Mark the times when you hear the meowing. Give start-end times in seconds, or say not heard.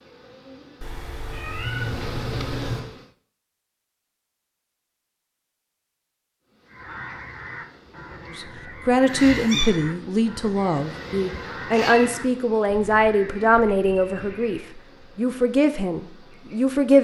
0.8-2.8, 9.1-9.7, 11.7-12.1.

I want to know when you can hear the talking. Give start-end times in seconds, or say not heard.
8.3-16.9.